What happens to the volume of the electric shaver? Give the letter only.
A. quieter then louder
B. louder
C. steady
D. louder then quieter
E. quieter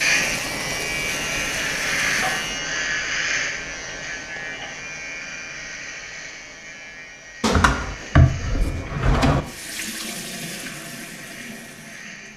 E.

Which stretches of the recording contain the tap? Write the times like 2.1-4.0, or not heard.
0.1-2.5, 9.4-12.3.